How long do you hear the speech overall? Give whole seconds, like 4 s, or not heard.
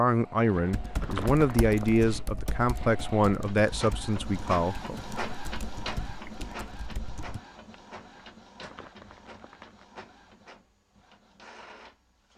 5 s.